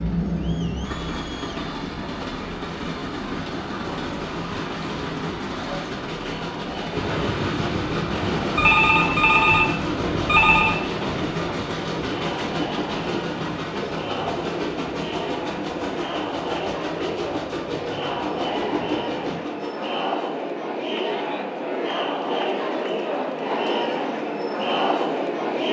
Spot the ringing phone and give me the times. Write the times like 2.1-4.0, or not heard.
8.6-10.8.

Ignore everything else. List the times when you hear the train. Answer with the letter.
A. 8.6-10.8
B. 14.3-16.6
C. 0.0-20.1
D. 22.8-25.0
C.